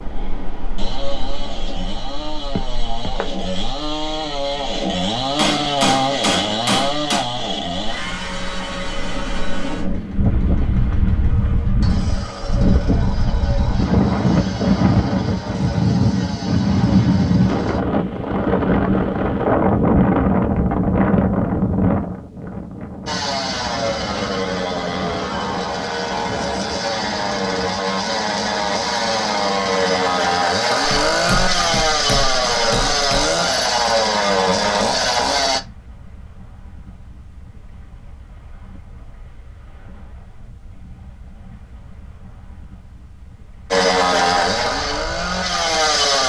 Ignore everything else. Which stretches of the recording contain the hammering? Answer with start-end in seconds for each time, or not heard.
5.3-7.2, 30.8-33.4.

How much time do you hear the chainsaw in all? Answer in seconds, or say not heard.
33 s.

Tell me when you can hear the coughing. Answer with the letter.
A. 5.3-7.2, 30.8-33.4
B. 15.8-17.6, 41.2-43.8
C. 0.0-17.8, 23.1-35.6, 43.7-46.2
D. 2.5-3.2
D.